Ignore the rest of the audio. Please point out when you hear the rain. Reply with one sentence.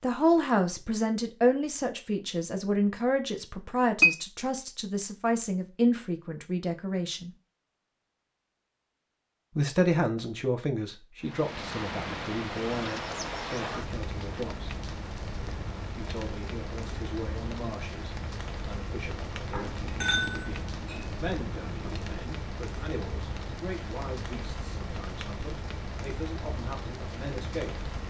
You can hear the rain from 11.2 to 28.0 s.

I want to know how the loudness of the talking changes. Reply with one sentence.
The loudness of the talking goes down.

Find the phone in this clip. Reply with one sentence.
You can't hear the phone here.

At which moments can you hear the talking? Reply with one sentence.
The talking can be heard from 0.0 to 7.3 s, from 9.6 to 14.7 s and from 15.9 to 27.9 s.